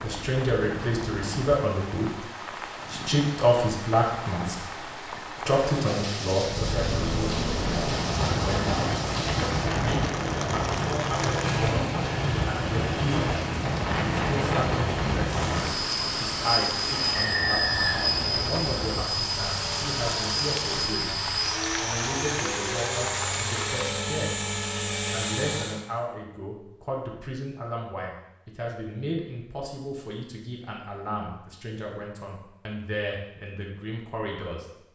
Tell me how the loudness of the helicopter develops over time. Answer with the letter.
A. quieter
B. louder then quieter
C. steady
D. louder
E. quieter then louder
C.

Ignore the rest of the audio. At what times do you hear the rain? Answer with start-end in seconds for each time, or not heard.
0.0-23.9.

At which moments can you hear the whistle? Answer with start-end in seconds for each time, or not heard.
17.1-18.2.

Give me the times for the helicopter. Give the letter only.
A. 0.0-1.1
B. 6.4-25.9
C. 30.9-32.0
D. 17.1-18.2
B.